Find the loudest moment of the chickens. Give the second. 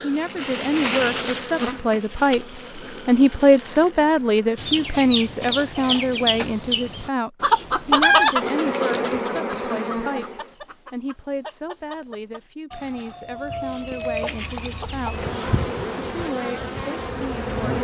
8 s.